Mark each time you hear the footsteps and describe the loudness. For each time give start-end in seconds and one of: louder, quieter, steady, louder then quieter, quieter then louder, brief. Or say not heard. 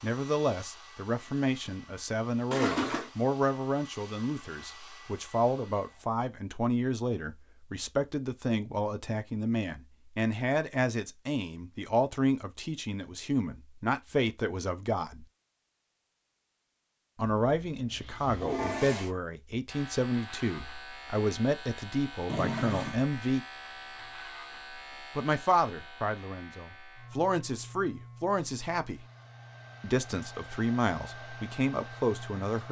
not heard.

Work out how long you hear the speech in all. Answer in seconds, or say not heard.
28 s.